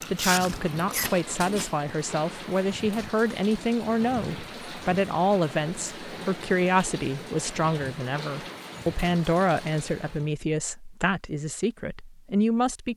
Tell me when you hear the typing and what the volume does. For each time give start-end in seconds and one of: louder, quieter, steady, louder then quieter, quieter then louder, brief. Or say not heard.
not heard.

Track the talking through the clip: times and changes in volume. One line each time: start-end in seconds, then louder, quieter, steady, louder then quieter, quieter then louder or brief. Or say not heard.
0.1-12.9 steady.